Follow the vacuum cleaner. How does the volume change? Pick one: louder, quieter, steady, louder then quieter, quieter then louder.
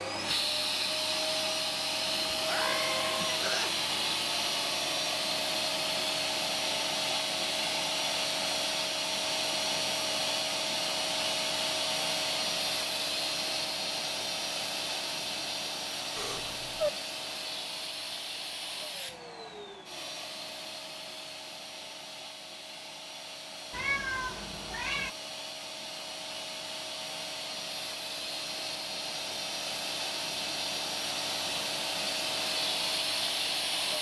quieter then louder.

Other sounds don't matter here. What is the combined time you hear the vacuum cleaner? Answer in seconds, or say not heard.
34 s.